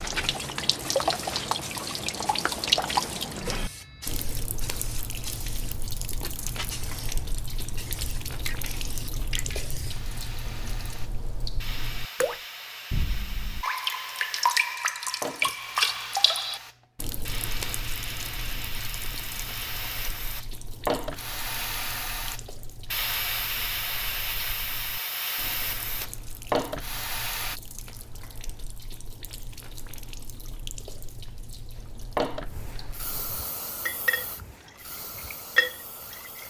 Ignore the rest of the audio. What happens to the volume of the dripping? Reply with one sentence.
The volume of the dripping goes down, then up.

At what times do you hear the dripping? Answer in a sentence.
You can hear the dripping from 0.0 to 36.4 s.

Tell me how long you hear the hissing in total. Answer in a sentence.
You can hear the hissing for 32 seconds altogether.